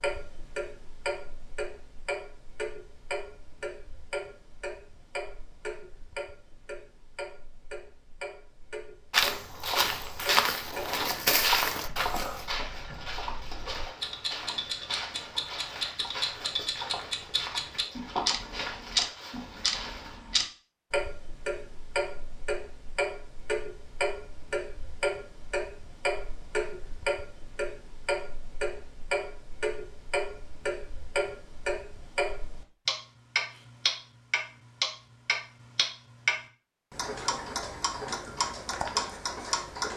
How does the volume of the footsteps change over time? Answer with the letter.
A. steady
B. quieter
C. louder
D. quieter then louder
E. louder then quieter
B.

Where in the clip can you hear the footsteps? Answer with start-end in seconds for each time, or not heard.
9.1-20.2.